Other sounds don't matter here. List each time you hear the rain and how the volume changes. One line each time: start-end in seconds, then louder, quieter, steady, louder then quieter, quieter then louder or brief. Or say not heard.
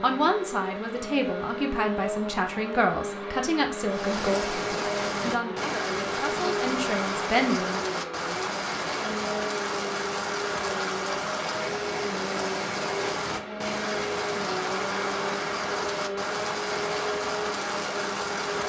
3.9-18.6 steady.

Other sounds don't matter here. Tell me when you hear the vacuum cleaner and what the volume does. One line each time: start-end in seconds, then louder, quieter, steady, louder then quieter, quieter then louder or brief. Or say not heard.
0.0-18.6 steady.